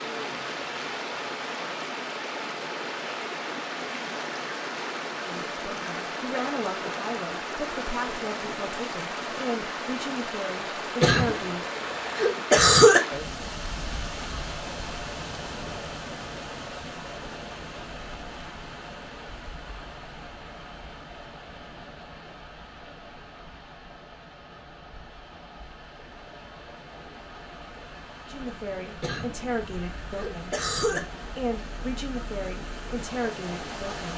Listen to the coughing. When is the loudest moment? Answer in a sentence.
The volume of the coughing peaks at 13 seconds.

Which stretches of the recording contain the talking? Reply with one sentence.
You can hear the talking from 5.2 to 11.7 s and from 28.2 to 34.1 s.